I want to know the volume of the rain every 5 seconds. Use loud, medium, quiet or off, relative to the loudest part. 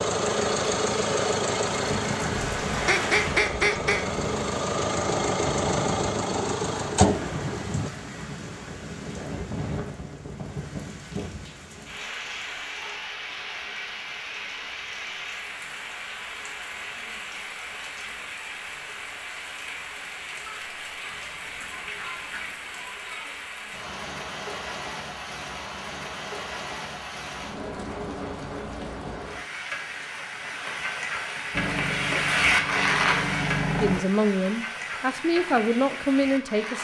medium, medium, medium, medium, medium, medium, loud, medium.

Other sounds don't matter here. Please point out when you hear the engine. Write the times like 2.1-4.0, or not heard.
0.0-7.9, 31.5-34.0.